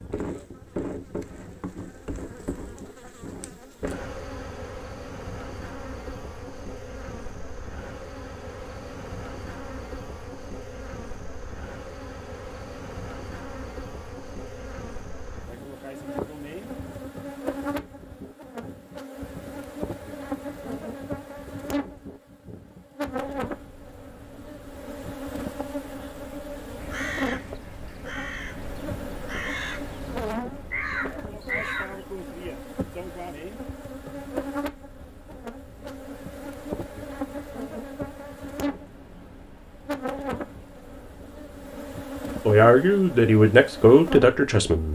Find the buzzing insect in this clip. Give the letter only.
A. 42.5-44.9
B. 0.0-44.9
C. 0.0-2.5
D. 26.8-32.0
B.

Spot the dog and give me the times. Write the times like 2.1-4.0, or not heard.
not heard.